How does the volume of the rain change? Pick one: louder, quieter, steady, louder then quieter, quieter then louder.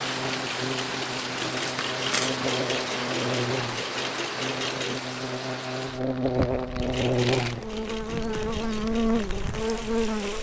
quieter.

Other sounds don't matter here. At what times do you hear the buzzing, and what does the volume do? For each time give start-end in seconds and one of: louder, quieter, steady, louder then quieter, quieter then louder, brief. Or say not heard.
0.0-10.3 louder.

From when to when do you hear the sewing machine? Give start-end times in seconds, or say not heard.
0.0-5.0, 6.8-10.3.